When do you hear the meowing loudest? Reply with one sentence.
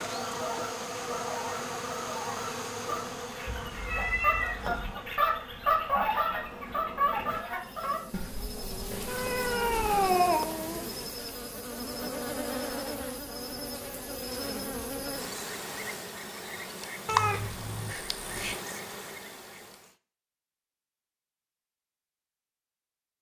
The volume of the meowing peaks at 10 seconds.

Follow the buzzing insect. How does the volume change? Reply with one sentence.
The loudness of the buzzing insect goes down, then up.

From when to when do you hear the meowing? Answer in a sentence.
The meowing can be heard from 3.5 to 5.0 s, from 8.9 to 10.8 s and from 17.1 to 18.6 s.